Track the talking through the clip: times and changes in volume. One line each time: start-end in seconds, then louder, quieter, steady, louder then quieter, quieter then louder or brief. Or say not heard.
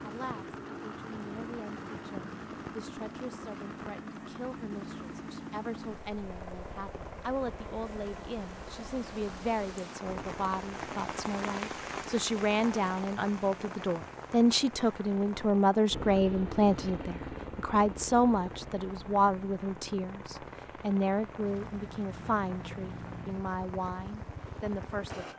0.1-25.3 louder then quieter.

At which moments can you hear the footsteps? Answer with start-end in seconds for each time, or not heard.
not heard.